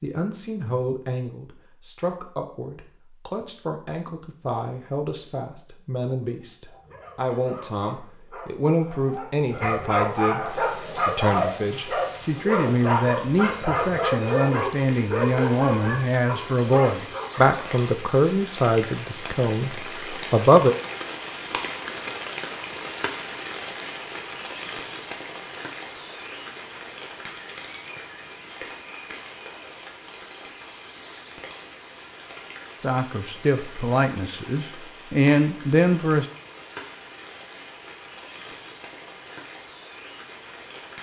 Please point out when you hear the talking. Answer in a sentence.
You can hear the talking from 0.0 to 20.8 s and from 32.8 to 36.2 s.